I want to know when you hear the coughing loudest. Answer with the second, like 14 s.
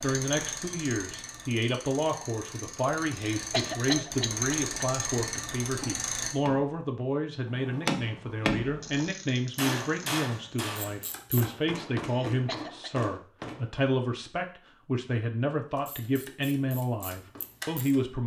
4 s.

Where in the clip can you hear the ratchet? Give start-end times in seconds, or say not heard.
0.0-6.3, 8.6-11.7, 15.8-18.1.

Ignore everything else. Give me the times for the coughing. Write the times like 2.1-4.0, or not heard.
3.1-4.6, 12.1-12.9.